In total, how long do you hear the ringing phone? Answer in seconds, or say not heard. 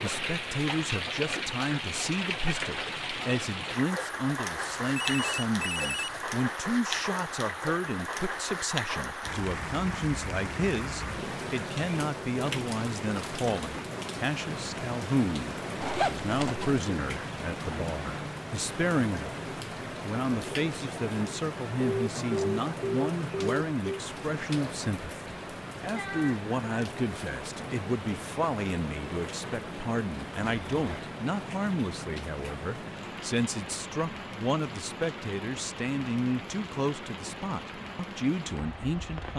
4 s.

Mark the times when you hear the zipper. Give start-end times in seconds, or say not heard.
15.8-16.8, 30.5-31.1.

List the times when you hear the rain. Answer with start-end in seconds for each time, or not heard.
0.0-39.3.